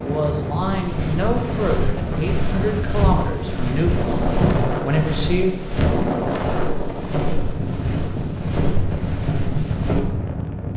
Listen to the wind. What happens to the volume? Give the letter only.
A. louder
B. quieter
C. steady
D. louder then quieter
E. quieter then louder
C.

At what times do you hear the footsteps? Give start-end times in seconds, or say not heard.
0.6-10.0.